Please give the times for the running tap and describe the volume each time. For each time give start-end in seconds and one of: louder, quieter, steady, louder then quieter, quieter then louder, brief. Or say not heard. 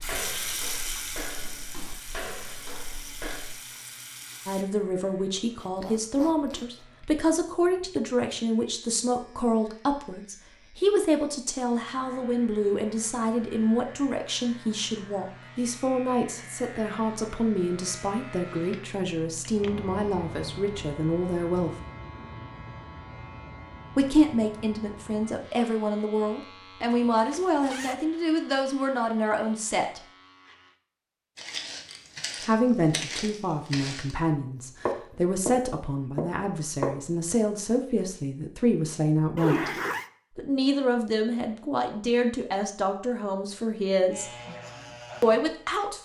0.0-4.7 quieter.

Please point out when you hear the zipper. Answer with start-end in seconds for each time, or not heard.
5.5-6.8, 26.9-28.1, 39.4-40.0.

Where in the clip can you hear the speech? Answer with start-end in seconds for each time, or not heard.
4.5-21.8, 23.9-30.0, 32.5-39.8, 40.4-44.2, 45.2-45.9.